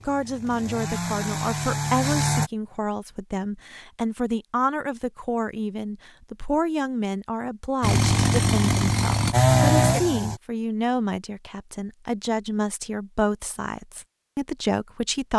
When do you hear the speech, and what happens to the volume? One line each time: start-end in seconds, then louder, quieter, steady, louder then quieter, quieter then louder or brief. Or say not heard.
0.1-15.3 steady.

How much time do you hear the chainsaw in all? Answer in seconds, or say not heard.
5 s.